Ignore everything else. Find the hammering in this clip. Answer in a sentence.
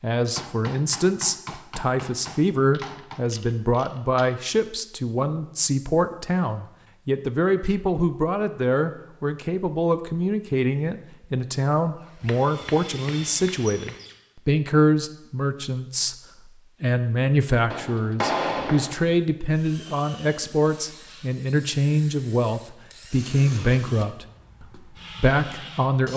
The hammering can be heard from 0.3 to 3.2 s, from 12.2 to 14.0 s and from 17.7 to 19.1 s.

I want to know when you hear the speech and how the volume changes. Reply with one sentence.
The speech can be heard from 0.0 to 26.1 s, at a steady volume.